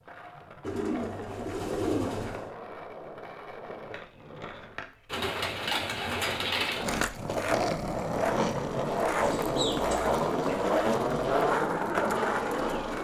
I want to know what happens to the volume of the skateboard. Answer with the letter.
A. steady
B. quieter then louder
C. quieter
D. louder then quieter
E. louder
E.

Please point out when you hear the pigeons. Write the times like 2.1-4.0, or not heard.
0.6-2.5, 5.1-6.8, 9.2-10.7.